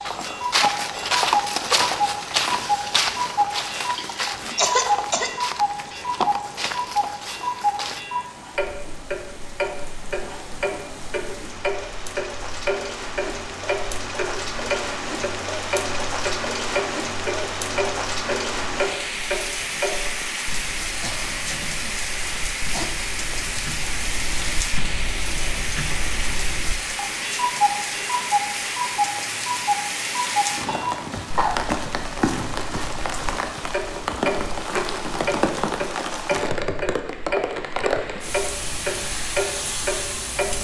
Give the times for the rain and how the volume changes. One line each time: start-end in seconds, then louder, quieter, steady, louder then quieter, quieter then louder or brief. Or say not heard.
0.0-40.5 louder.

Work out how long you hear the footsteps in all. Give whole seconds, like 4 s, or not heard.
8 s.